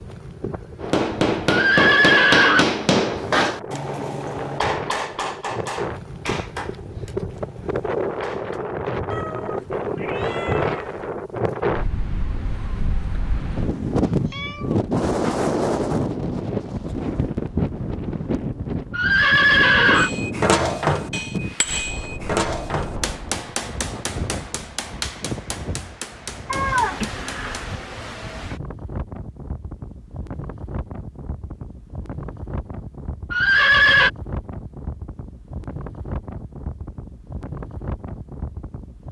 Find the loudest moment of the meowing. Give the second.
27 s.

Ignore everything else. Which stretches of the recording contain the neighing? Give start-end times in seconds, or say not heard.
1.4-2.6, 18.9-20.1, 33.3-34.1.